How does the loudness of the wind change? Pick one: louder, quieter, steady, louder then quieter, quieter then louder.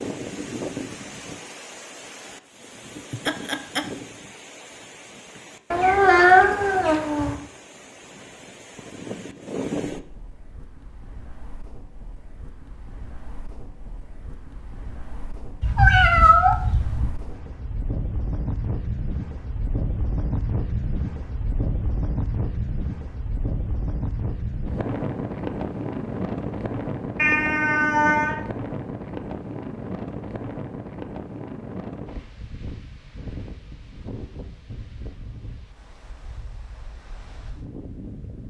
louder then quieter.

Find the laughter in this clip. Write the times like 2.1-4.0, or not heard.
3.1-3.9.